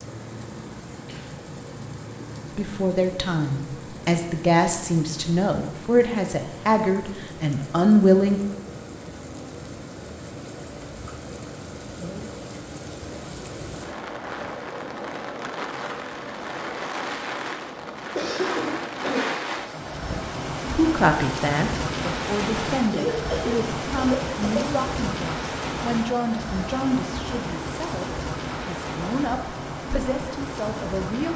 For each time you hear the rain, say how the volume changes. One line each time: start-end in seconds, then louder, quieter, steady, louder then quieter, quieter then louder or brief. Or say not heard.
0.0-31.3 louder.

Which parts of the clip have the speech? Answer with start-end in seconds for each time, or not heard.
2.5-8.4, 20.1-31.3.